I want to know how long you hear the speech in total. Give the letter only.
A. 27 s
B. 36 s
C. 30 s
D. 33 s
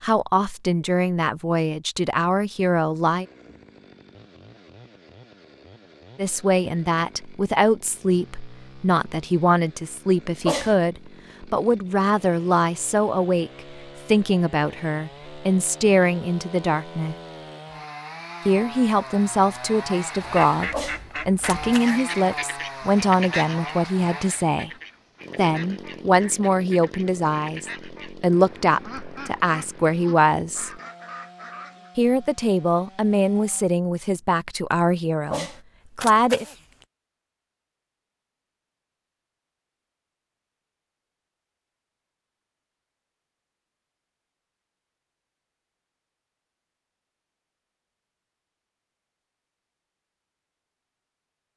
C.